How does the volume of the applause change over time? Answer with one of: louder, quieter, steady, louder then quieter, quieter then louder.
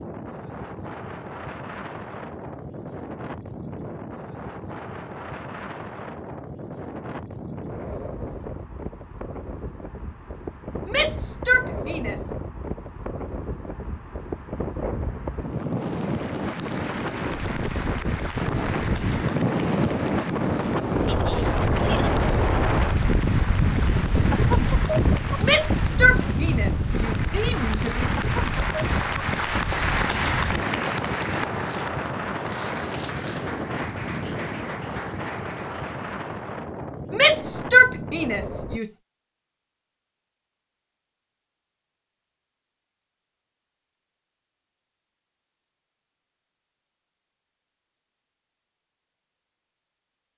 louder then quieter.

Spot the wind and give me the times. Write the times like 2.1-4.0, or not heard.
0.0-38.8.